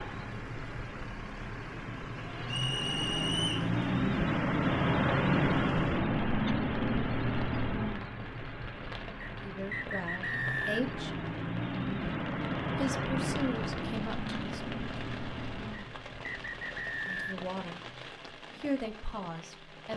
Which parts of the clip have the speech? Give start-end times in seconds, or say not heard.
9.3-11.2, 12.8-14.6, 17.1-17.9, 18.6-19.9.